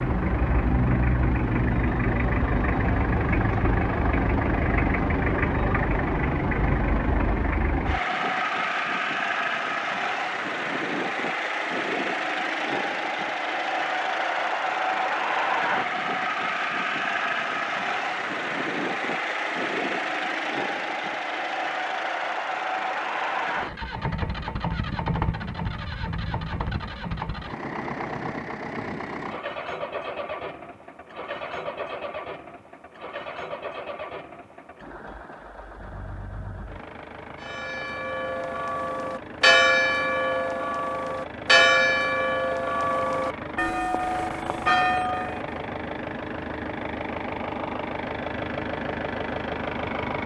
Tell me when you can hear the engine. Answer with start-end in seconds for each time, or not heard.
0.0-50.2.